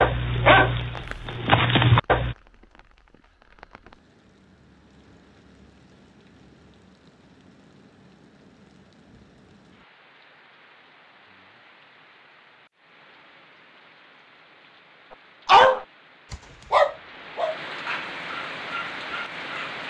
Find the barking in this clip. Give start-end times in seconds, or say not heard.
0.0-2.4, 15.4-19.8.